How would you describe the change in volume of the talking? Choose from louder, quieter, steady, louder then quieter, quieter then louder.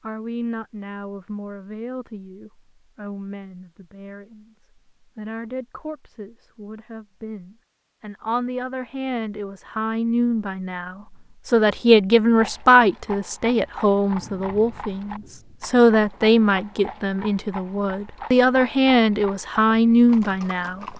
louder.